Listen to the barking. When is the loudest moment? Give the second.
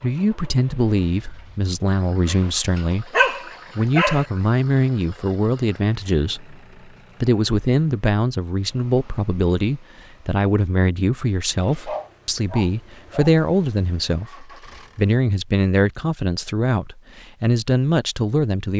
3 s.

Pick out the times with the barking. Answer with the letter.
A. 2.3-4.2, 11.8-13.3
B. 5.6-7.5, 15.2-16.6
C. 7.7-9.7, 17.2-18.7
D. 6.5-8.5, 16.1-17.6
A.